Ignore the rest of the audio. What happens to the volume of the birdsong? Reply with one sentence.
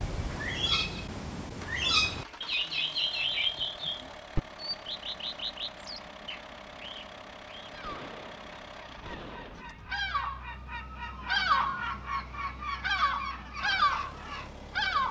The loudness of the birdsong goes down, then up.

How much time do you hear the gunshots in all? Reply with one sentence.
You can hear the gunshots for 2 seconds altogether.